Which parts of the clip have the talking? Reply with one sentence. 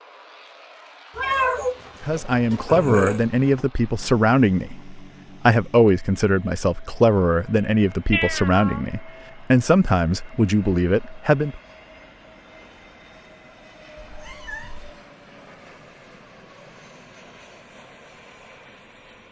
You can hear the talking from 2.0 to 11.6 s.